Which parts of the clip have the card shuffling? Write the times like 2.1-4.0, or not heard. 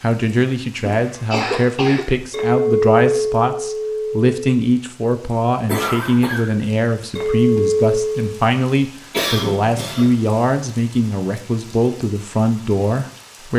not heard.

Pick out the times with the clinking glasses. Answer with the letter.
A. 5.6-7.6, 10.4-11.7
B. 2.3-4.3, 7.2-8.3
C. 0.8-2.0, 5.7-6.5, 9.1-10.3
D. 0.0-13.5
B.